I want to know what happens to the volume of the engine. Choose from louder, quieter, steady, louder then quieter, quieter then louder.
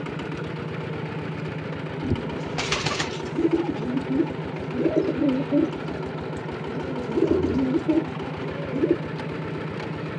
steady.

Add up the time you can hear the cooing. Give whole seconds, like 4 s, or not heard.
7 s.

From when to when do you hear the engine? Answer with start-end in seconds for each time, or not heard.
0.0-10.1.